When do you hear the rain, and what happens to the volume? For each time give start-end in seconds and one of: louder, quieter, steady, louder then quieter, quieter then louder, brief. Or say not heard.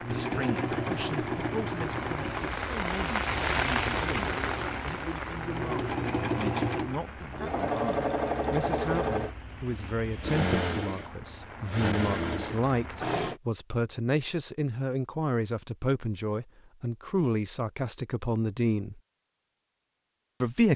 0.0-13.2 louder then quieter.